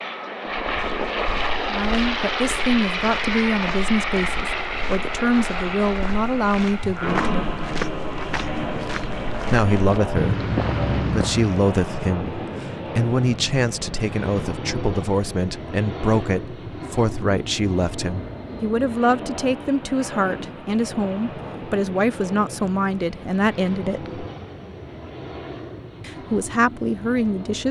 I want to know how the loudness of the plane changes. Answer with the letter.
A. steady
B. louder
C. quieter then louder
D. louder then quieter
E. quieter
E.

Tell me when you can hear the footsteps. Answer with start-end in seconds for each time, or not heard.
0.6-11.7.